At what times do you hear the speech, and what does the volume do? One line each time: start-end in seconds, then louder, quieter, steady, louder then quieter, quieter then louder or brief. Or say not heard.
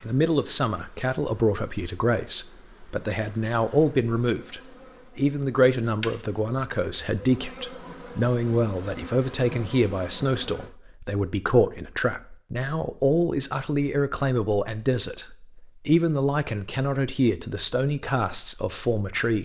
0.0-19.3 steady.